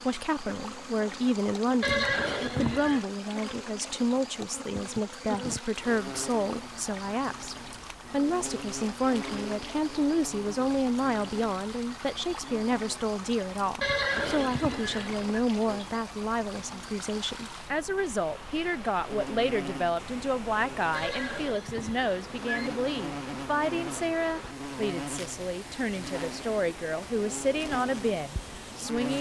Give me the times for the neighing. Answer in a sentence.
The neighing can be heard from 1.8 to 3.0 s, from 13.8 to 15.3 s and from 20.9 to 22.8 s.